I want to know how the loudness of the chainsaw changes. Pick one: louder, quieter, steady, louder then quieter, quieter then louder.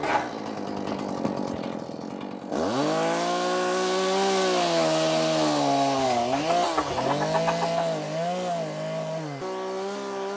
louder then quieter.